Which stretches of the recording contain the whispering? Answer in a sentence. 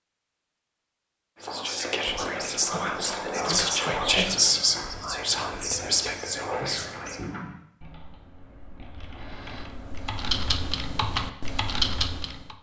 You can hear the whispering from 1.4 to 7.2 s.